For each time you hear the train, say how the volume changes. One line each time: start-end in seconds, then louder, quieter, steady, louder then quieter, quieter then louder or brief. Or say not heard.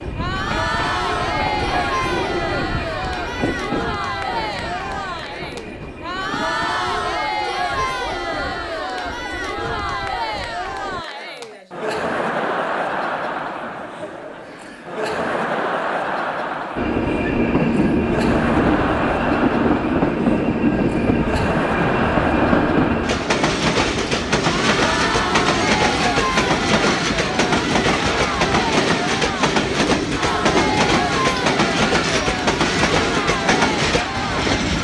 0.0-11.1 quieter
16.8-34.7 steady.